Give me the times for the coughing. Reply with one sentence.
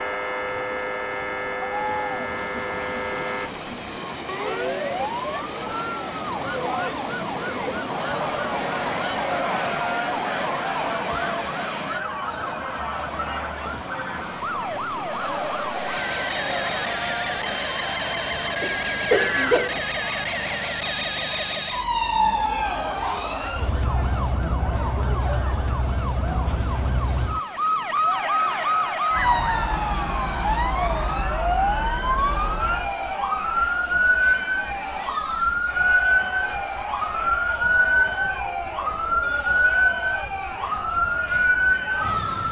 The coughing can be heard from 18.6 to 19.8 s.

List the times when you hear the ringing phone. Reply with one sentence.
You can't hear the ringing phone here.